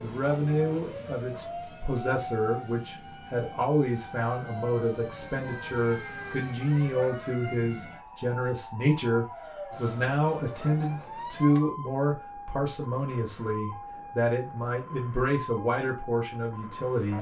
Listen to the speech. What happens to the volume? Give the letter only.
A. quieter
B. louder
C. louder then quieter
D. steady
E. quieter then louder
D.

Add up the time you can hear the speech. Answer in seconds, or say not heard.
17 s.